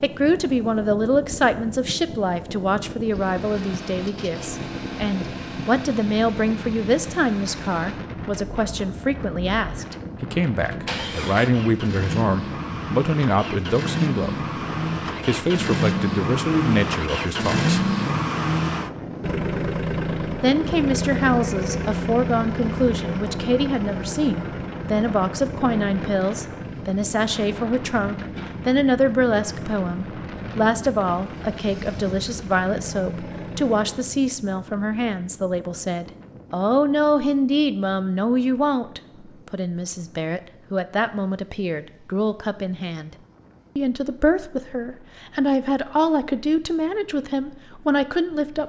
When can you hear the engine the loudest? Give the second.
18 s.